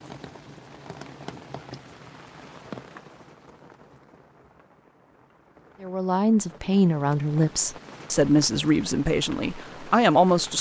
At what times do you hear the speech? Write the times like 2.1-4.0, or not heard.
5.8-10.5.